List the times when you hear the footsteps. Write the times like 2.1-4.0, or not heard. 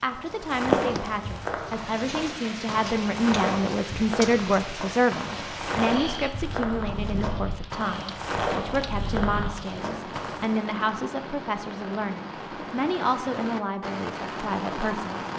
0.0-10.6.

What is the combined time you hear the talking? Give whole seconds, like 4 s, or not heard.
15 s.